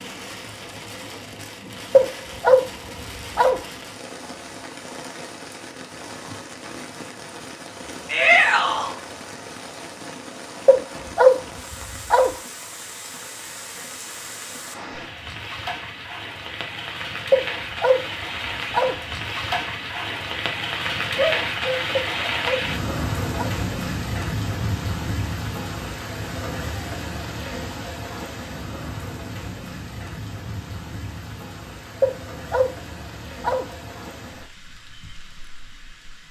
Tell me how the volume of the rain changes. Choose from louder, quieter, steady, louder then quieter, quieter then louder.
louder then quieter.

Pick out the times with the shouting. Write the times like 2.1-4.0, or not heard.
8.1-8.9, 21.1-22.3.